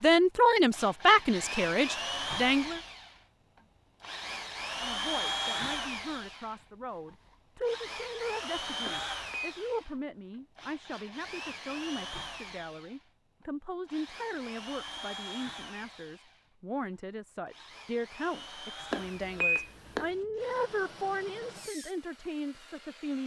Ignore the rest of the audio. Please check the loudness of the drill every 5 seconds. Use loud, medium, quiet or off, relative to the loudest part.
loud, loud, medium, medium, quiet.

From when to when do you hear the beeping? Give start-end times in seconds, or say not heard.
8.8-9.6, 18.9-20.1.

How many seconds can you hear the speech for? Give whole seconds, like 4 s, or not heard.
21 s.